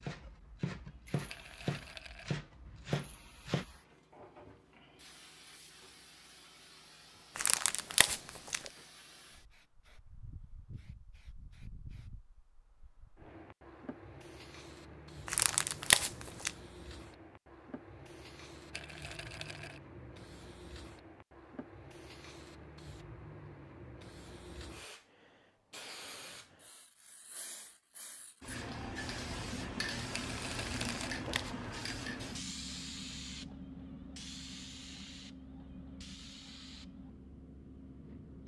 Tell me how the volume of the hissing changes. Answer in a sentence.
The volume of the hissing goes up.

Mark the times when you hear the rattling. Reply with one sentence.
You can hear the rattling from 1.2 to 2.4 s, from 18.7 to 19.8 s and from 30.1 to 31.2 s.